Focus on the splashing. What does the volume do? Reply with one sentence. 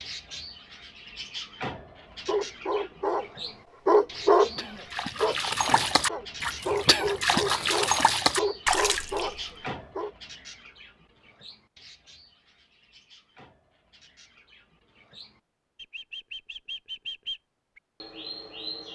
The loudness of the splashing goes up.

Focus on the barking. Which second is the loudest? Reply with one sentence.
The volume of the barking peaks at 4 seconds.